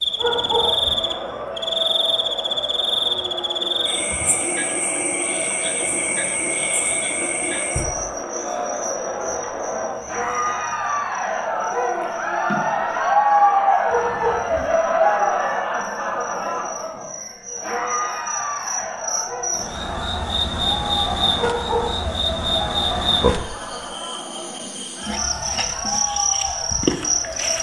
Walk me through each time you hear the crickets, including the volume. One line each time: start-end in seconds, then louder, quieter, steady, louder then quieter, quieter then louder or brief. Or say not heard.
0.0-27.5 quieter then louder.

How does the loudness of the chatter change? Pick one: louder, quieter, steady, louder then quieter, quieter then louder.
louder then quieter.